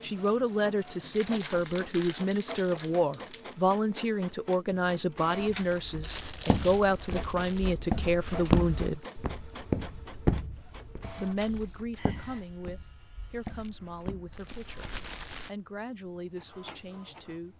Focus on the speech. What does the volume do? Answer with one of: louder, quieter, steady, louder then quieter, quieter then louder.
quieter.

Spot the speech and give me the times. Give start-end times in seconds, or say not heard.
0.0-9.1, 11.2-17.5.